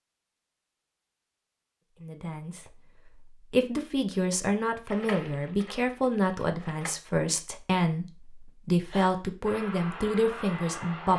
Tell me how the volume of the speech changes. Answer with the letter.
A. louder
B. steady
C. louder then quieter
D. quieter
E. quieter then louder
B.